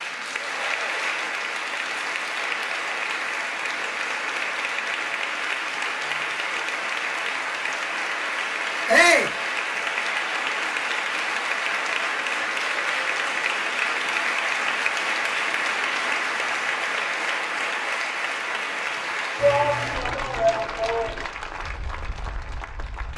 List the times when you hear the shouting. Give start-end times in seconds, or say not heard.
8.8-9.3, 19.4-21.2.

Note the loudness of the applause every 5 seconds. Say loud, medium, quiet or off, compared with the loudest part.
loud, loud, loud, loud, medium.